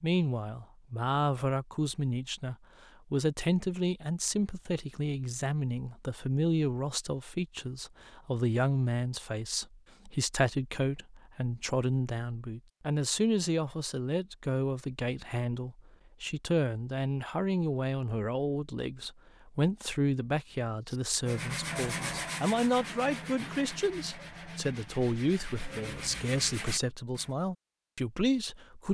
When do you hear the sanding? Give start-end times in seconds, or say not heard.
20.9-27.3.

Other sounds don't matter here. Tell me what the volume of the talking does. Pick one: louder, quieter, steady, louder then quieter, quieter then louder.
steady.